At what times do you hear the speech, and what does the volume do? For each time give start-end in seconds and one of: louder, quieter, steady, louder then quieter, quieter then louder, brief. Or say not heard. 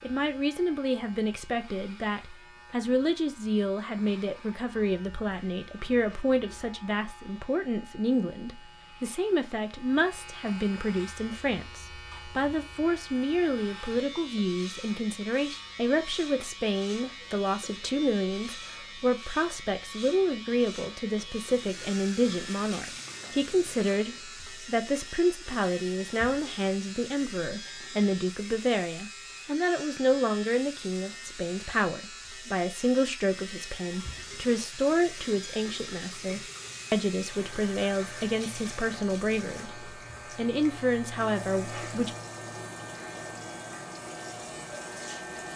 0.0-42.1 steady.